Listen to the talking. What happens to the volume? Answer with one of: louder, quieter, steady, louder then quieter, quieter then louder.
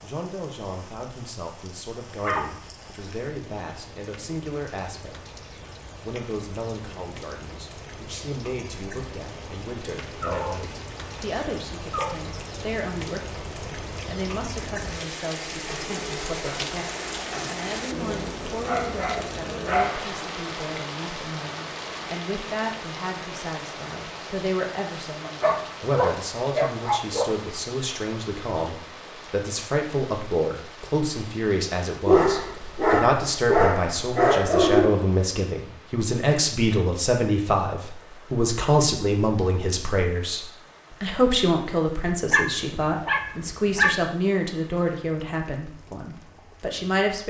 louder.